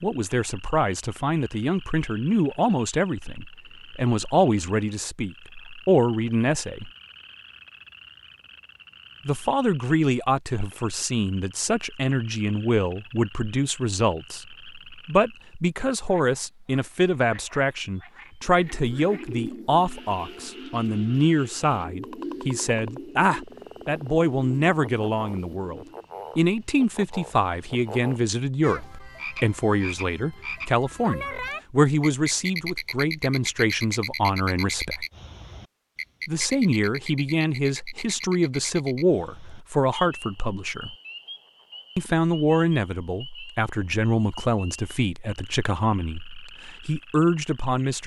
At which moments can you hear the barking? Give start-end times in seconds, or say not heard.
not heard.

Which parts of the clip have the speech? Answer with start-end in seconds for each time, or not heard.
0.0-6.9, 9.2-35.0, 36.2-41.0, 42.0-48.0.